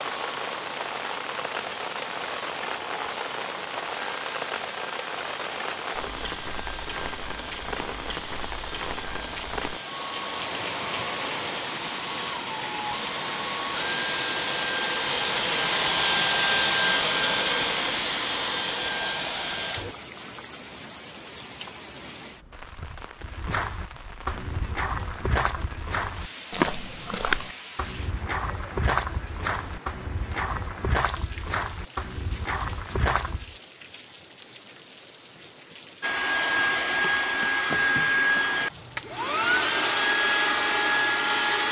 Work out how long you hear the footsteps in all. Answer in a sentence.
The footsteps can be heard for 10 seconds in total.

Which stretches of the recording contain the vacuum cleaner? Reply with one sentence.
You can hear the vacuum cleaner from 0.0 to 19.9 s and from 36.0 to 41.6 s.